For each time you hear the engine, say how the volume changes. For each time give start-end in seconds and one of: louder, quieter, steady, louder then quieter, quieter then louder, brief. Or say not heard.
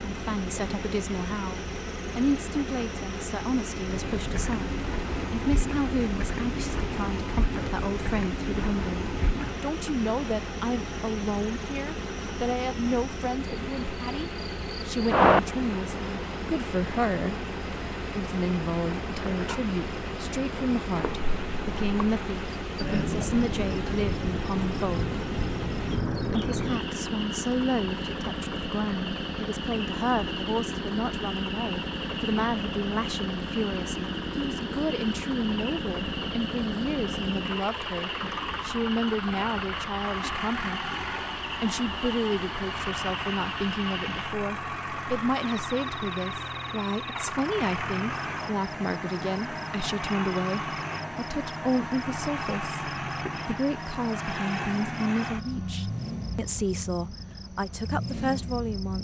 0.0-58.9 steady.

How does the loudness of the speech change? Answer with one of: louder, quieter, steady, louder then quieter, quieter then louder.
steady.